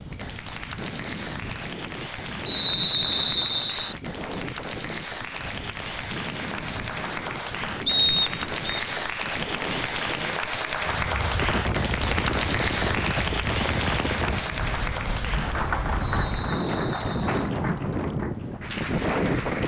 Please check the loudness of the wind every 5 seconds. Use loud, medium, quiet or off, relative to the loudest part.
medium, medium, loud, loud.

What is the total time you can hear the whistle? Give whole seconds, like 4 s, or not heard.
4 s.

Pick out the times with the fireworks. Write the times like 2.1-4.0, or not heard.
not heard.